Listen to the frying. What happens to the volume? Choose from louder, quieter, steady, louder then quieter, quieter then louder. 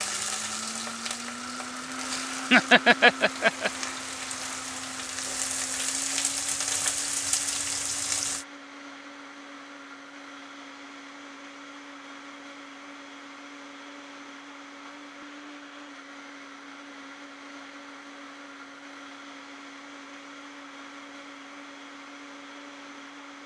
louder.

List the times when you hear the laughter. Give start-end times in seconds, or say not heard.
2.1-3.7.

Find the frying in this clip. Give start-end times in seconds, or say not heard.
0.0-8.4.